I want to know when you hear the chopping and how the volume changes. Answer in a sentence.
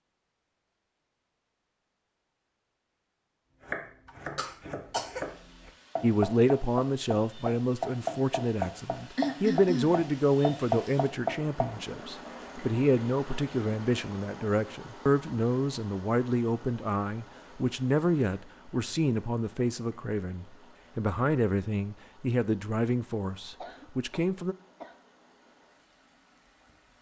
The chopping can be heard from 3.6 to 11.8 s, getting louder.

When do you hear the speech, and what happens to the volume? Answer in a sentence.
The speech can be heard from 6.0 to 24.6 s, at a steady volume.